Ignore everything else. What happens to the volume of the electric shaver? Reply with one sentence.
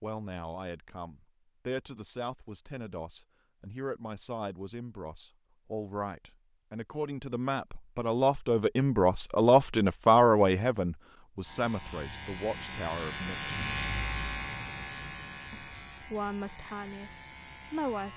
The loudness of the electric shaver goes up, then down.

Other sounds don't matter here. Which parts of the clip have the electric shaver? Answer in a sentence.
The electric shaver can be heard from 11.4 to 18.1 s.